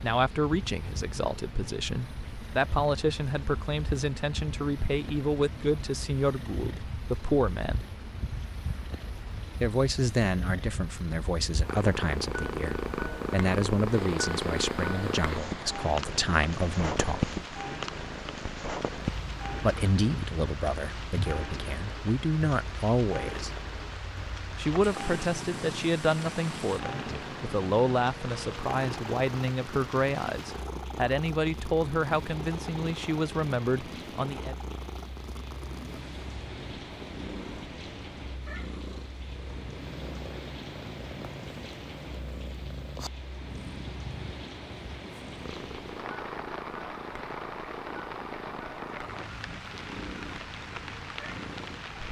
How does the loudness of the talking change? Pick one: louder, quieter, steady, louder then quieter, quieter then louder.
steady.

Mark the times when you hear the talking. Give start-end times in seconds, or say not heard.
0.0-7.8, 9.6-17.4, 19.6-23.5, 24.6-34.5.